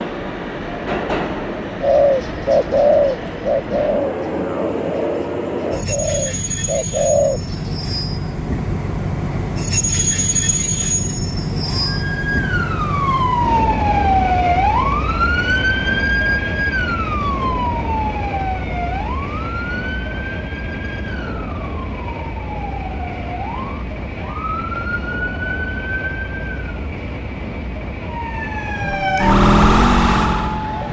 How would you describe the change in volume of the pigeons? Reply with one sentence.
The loudness of the pigeons goes down, then up.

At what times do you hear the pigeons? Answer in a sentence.
The pigeons can be heard from 1.8 to 7.8 s.